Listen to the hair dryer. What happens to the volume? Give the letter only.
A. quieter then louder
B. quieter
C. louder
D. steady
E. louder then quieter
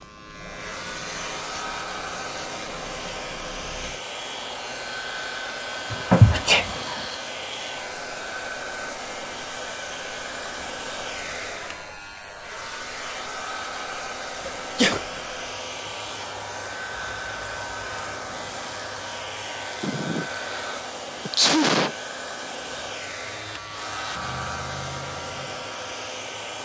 D.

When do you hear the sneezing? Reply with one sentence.
The sneezing can be heard from 5.9 to 7.0 s, from 14.4 to 15.0 s and from 19.8 to 21.9 s.